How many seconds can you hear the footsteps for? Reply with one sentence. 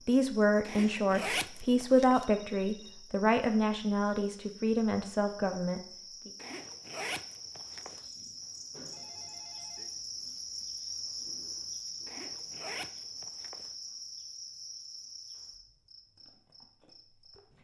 You can't hear the footsteps here.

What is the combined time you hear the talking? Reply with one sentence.
You can hear the talking for 6 seconds altogether.